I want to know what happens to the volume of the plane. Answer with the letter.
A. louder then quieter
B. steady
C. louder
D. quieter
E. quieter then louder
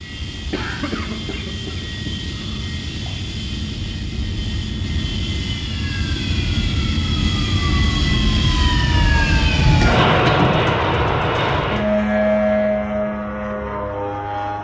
C.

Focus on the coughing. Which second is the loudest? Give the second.
10 s.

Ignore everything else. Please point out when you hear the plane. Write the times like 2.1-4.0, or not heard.
0.0-14.5.